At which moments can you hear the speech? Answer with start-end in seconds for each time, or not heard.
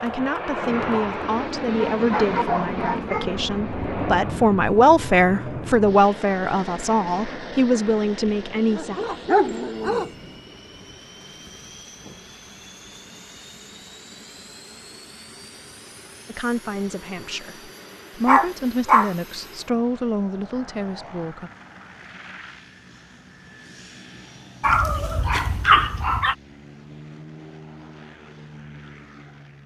0.0-9.0, 16.2-21.5.